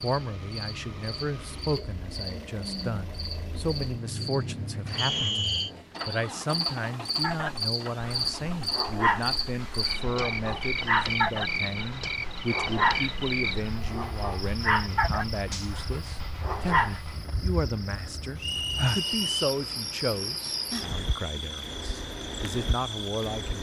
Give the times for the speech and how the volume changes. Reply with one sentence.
The speech can be heard from 0.0 to 23.5 s, at a steady volume.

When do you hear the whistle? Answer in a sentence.
You can hear the whistle from 5.0 to 5.7 s and from 18.4 to 19.5 s.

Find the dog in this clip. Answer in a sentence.
The dog can be heard from 7.2 to 17.1 s.